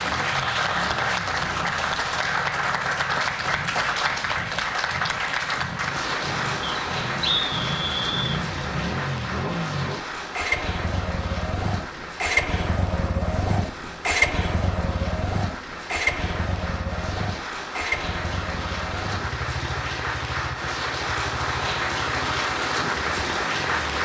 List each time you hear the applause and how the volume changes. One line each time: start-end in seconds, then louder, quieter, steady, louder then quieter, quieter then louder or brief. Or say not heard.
0.0-23.9 quieter then louder.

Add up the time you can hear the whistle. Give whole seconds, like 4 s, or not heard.
2 s.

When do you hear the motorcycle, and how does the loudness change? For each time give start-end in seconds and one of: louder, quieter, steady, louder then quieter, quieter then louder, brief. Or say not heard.
0.0-23.9 louder then quieter.